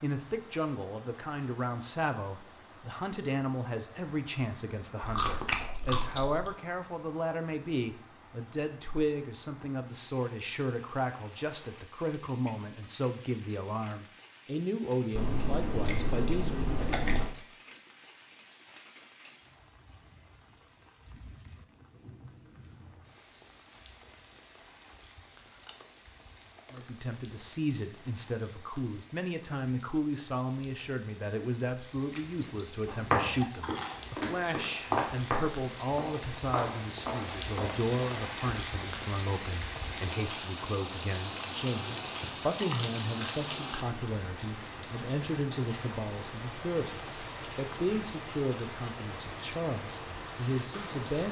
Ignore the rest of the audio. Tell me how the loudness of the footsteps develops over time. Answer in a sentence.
The loudness of the footsteps goes up, then down.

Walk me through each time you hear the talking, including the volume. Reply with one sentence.
The talking can be heard from 0.0 to 16.6 s, at a steady volume; and from 26.7 to 51.2 s, at a steady volume.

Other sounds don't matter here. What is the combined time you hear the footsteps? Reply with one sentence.
You can hear the footsteps for 5 seconds altogether.